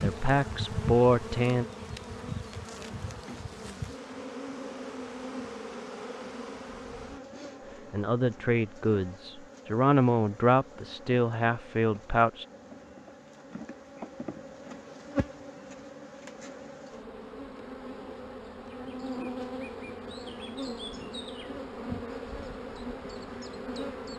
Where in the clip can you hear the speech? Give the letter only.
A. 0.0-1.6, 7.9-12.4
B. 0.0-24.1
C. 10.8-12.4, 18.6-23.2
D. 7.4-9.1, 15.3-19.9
A.